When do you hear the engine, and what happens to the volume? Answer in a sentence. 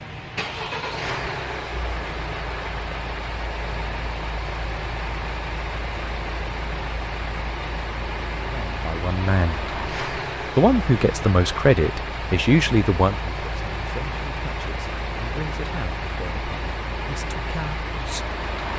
You can hear the engine from 0.0 to 18.7 s, at a steady volume.